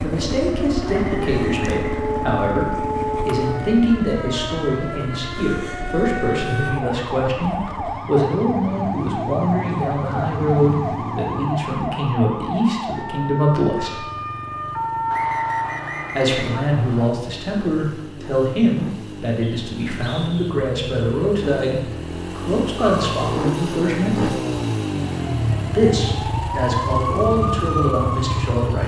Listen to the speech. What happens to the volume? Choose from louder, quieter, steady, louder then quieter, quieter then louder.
steady.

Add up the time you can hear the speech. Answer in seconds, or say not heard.
25 s.